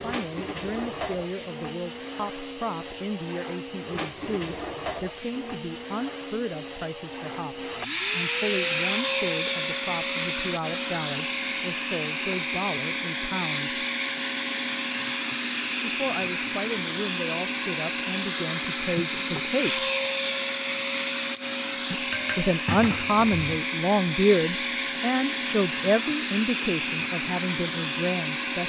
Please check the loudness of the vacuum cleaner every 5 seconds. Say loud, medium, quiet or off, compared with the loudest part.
medium, loud, loud, loud, loud, loud.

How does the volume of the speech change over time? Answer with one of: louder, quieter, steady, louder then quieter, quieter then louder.
louder.